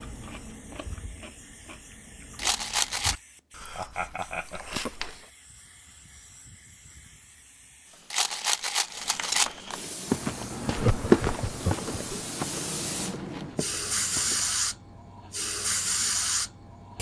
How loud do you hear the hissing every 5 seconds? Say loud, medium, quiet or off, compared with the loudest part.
quiet, quiet, loud, loud.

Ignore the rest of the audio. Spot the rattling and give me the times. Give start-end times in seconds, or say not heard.
2.4-3.1, 8.1-9.6, 12.9-13.6.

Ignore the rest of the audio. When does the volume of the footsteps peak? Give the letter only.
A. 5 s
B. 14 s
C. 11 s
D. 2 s
C.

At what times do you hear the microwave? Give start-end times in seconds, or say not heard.
not heard.